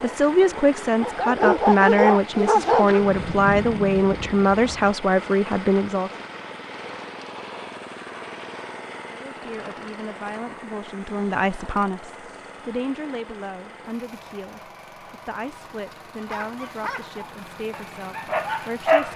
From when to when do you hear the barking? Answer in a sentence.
The barking can be heard from 0.0 to 3.0 s and from 16.1 to 19.1 s.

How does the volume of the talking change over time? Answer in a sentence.
The volume of the talking goes down.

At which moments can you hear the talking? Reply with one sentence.
You can hear the talking from 0.0 to 6.1 s and from 9.1 to 19.1 s.